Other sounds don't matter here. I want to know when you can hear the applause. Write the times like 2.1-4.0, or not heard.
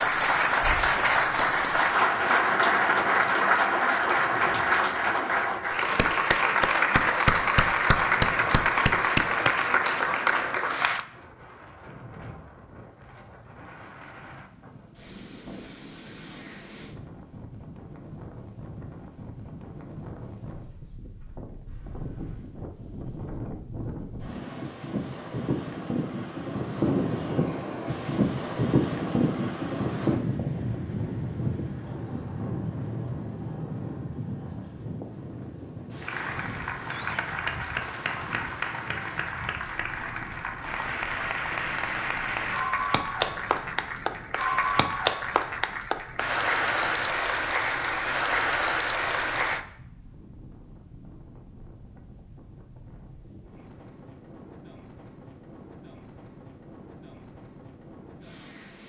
0.0-11.1, 36.0-49.6.